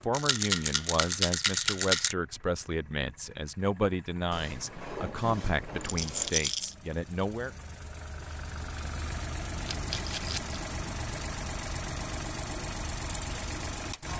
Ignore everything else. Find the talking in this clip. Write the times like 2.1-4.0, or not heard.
0.0-7.5.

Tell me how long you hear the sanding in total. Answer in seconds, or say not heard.
2 s.